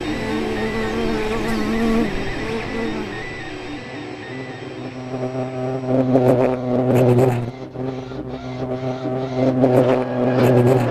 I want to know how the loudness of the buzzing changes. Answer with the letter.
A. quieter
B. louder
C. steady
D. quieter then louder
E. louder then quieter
D.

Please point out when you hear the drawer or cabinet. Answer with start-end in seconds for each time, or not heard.
not heard.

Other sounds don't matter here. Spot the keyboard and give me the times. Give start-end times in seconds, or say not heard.
not heard.